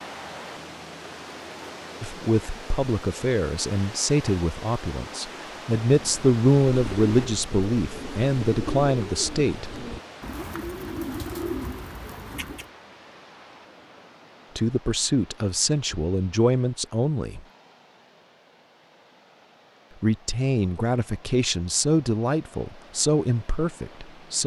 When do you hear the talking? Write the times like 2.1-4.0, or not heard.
2.0-9.7, 14.6-17.4, 20.0-24.4.